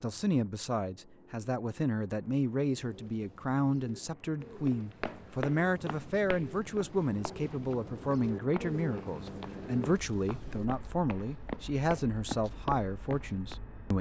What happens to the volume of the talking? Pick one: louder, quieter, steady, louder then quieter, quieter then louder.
steady.